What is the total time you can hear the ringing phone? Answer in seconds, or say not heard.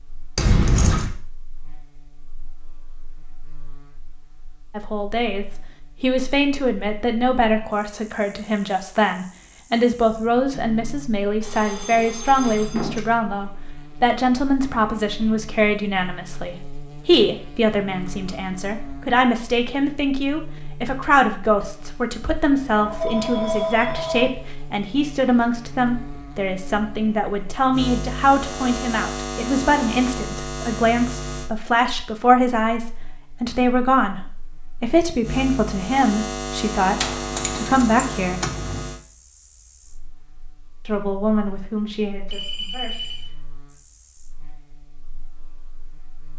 4 s.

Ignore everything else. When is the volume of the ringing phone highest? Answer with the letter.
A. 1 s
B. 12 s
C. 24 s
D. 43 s
C.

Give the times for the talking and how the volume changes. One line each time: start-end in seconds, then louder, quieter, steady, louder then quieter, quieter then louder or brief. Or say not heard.
4.8-38.4 steady
40.9-43.1 brief.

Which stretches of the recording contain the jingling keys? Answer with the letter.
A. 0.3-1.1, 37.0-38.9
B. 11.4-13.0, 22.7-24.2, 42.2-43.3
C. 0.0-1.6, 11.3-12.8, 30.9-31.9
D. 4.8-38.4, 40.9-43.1
A.